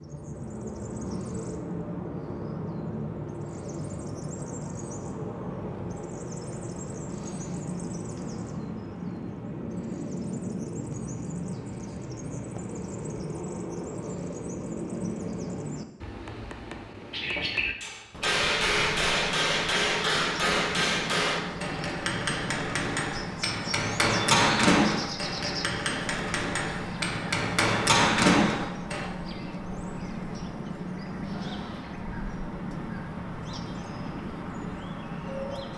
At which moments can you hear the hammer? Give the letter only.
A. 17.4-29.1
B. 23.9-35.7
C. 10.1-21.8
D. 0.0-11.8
A.